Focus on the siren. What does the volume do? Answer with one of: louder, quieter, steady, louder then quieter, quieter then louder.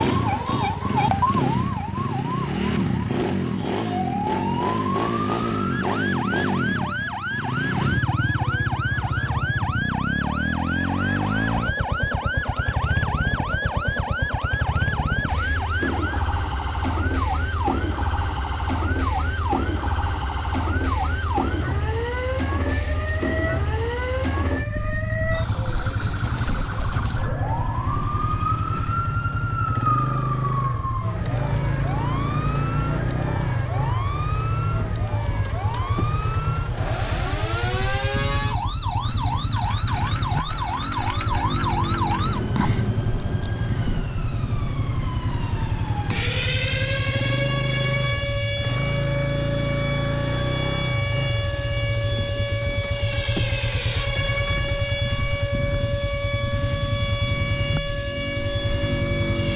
steady.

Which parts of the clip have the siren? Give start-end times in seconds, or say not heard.
0.0-59.5.